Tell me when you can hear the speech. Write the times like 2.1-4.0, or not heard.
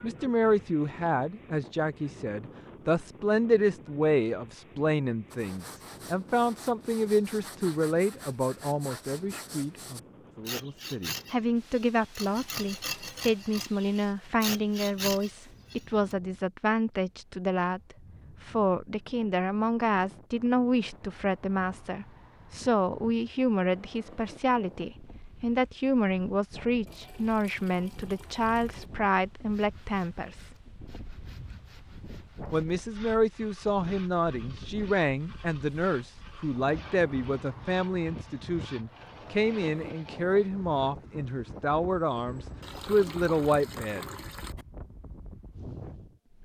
0.0-30.4, 32.5-44.1.